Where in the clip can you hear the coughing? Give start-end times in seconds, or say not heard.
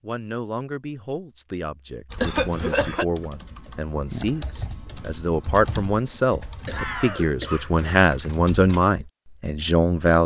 2.1-3.0, 6.7-7.8.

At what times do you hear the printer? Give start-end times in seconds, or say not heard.
not heard.